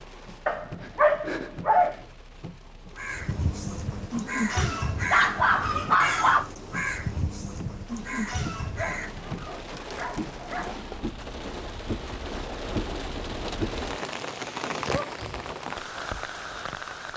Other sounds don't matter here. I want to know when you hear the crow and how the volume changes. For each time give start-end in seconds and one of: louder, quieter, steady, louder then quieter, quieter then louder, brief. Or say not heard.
3.0-9.3 steady.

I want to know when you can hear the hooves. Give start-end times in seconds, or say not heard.
not heard.